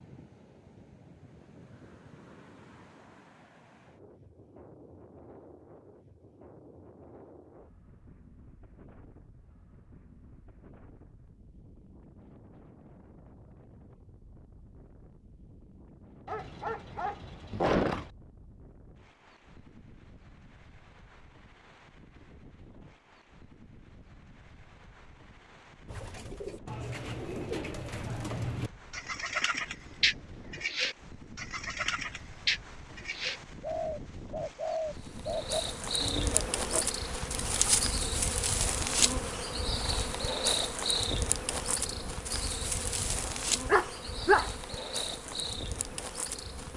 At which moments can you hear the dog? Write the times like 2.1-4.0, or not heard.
16.2-18.1, 43.2-44.5.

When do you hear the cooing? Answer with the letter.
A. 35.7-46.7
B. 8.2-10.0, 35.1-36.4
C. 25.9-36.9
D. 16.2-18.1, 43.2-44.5
C.